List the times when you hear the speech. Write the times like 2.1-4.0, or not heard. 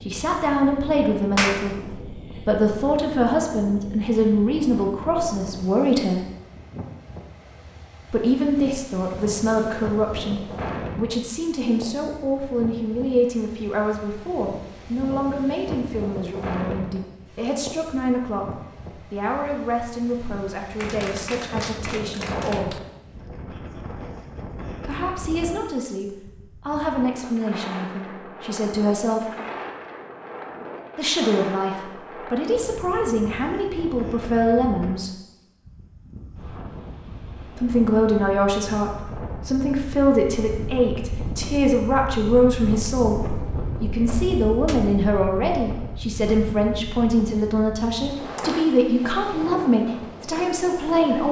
0.1-6.2, 8.1-22.8, 24.9-29.3, 30.9-35.1, 37.5-51.2.